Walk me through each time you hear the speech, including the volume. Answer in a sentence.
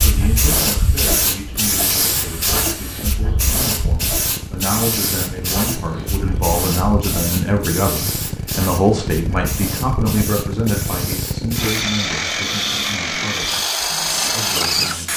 You can hear the speech from 0.0 to 13.6 s, getting louder then quieter; and briefly from 14.2 to 15.1 s.